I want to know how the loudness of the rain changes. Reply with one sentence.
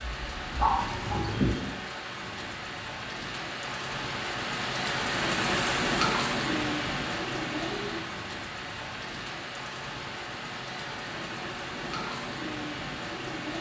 The loudness of the rain goes up, then down.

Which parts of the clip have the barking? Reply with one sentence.
You can hear the barking from 0.2 to 1.6 s.